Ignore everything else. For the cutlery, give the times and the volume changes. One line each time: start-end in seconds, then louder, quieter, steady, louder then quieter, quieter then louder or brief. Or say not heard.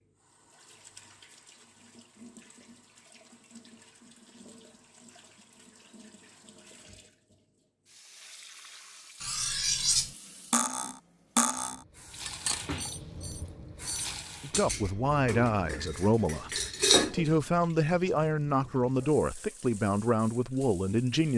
9.2-17.4 quieter then louder.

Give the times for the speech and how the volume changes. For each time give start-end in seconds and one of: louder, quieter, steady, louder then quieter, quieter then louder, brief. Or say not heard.
14.4-21.3 steady.